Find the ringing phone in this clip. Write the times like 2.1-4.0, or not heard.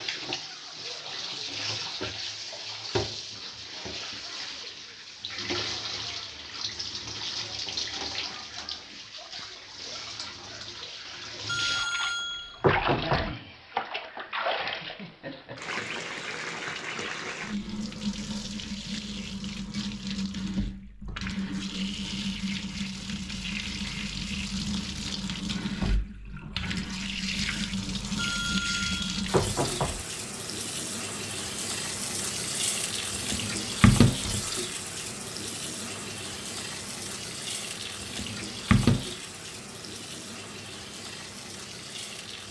11.4-13.3, 28.1-30.1.